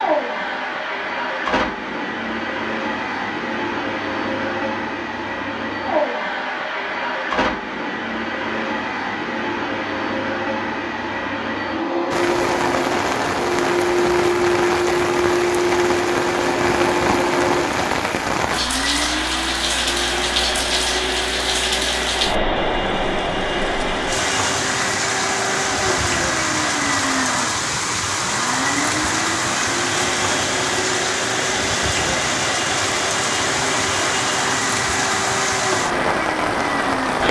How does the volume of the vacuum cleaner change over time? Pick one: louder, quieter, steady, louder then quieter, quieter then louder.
steady.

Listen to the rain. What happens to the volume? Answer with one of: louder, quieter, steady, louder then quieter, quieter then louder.
steady.